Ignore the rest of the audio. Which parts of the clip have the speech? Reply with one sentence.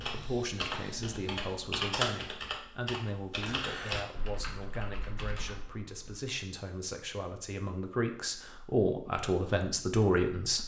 The speech can be heard from 0.0 to 10.6 s.